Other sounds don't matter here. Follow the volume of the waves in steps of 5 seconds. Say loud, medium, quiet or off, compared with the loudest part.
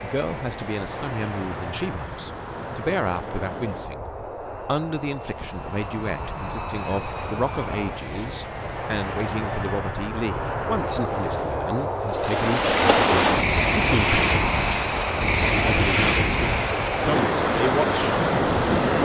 quiet, quiet, loud, loud.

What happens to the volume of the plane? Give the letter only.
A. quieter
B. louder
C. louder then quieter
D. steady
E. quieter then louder
B.